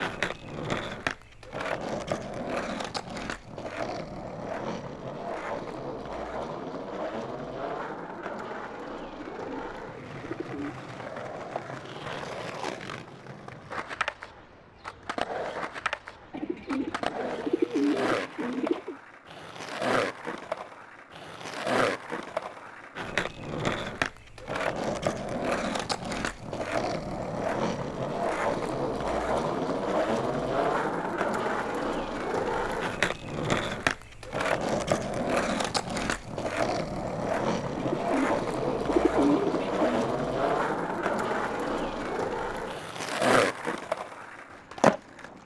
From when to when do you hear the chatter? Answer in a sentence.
You can't hear the chatter here.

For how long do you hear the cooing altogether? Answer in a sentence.
You can hear the cooing for 7 seconds altogether.